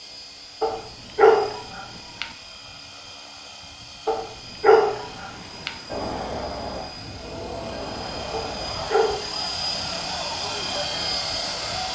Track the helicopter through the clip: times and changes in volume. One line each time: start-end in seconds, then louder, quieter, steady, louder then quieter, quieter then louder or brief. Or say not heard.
0.0-11.9 louder.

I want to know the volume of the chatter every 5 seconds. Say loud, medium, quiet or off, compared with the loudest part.
off, loud, loud.